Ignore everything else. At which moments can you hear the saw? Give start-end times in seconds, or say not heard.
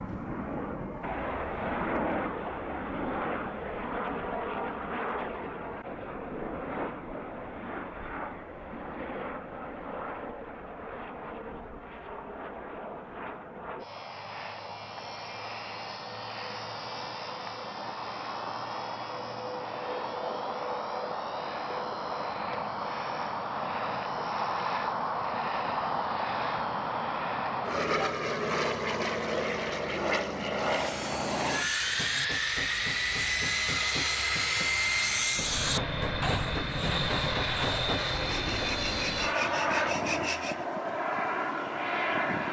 30.6-40.6.